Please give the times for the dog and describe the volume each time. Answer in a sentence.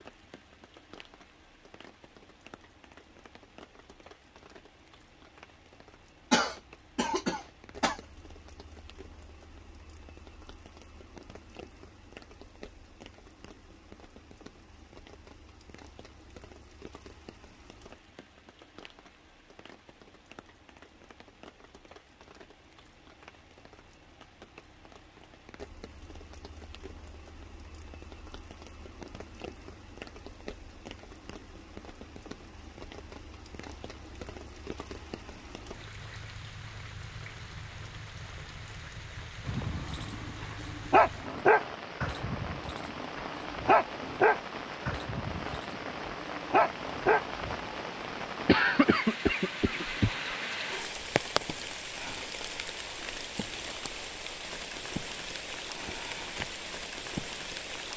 You can hear the dog from 39.5 to 47.2 s, at a steady volume.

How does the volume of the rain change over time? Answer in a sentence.
The volume of the rain goes up.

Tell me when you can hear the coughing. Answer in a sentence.
You can hear the coughing from 6.3 to 8.0 s and from 48.5 to 50.4 s.